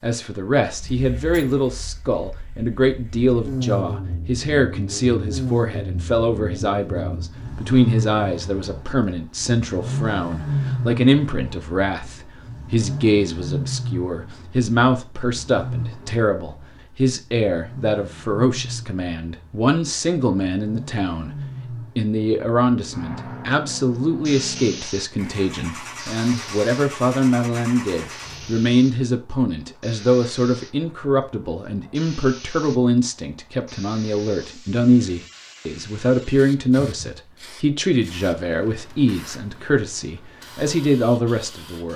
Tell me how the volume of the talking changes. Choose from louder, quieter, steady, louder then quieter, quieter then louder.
steady.